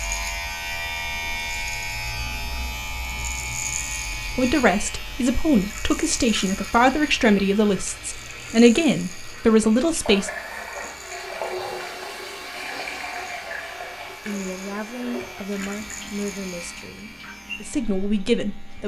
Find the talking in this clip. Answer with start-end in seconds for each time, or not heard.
4.3-10.3, 14.2-18.8.